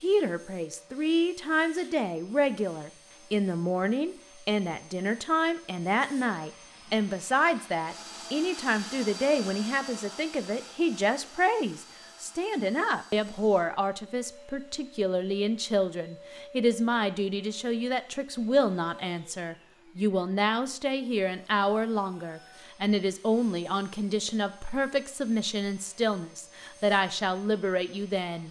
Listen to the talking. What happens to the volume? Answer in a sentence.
The loudness of the talking stays about the same.